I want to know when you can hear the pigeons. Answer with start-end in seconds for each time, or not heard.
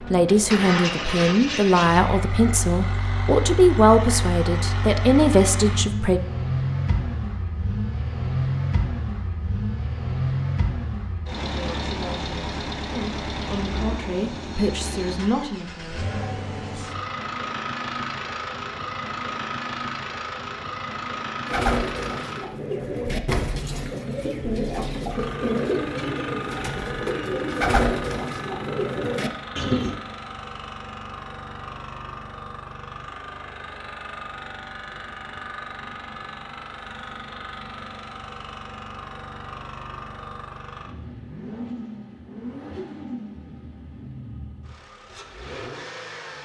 21.4-29.9.